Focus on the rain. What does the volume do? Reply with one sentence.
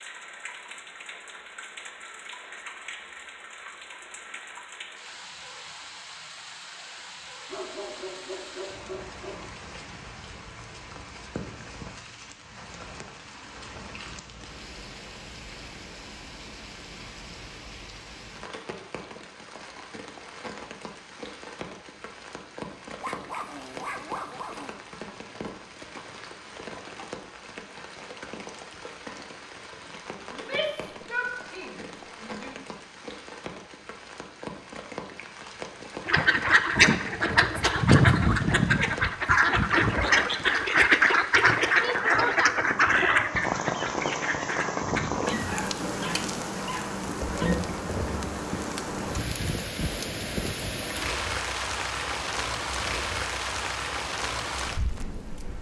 The volume of the rain goes up.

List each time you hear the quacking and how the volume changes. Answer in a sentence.
You can hear the quacking from 36.0 to 45.5 s, getting quieter.